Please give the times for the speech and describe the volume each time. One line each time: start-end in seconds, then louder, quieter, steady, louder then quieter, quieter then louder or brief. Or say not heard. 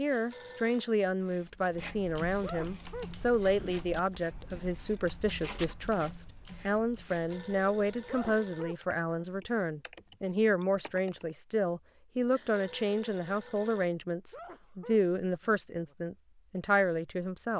0.0-17.5 steady.